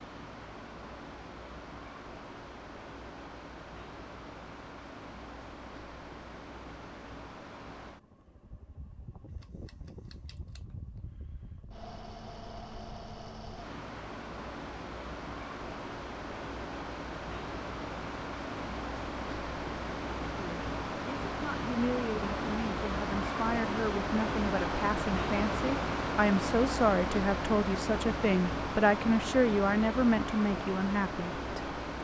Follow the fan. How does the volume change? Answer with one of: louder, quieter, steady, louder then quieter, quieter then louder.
louder.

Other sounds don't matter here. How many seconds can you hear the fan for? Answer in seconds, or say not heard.
32 s.